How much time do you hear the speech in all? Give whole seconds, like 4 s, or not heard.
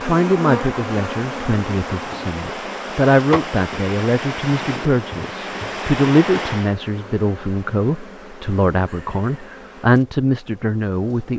11 s.